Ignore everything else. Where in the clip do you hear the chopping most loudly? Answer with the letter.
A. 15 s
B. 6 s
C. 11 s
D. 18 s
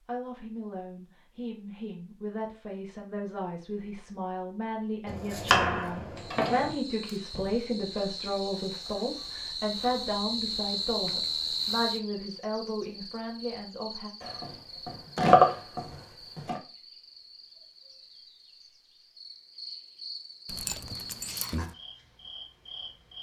A.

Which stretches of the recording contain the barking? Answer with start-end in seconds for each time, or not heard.
20.4-21.8.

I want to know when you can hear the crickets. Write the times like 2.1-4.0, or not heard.
6.2-23.1.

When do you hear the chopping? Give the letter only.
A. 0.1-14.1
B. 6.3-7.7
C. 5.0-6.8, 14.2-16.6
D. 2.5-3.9
C.